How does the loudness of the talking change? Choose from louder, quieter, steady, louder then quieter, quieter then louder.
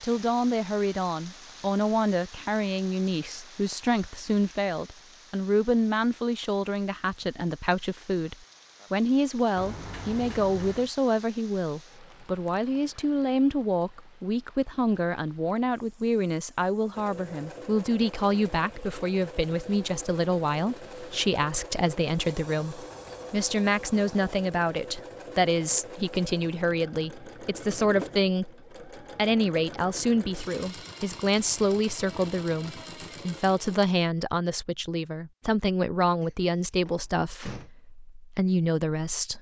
steady.